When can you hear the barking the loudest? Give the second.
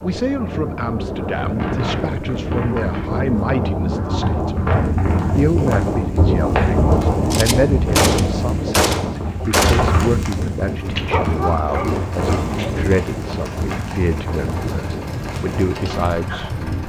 11 s.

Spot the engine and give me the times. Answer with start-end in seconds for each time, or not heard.
10.6-16.8.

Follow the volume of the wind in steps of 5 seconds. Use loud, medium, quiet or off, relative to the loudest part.
loud, loud, medium, medium.